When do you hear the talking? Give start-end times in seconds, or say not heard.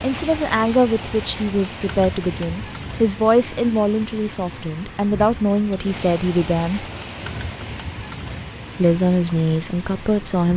0.0-6.8, 8.8-10.5.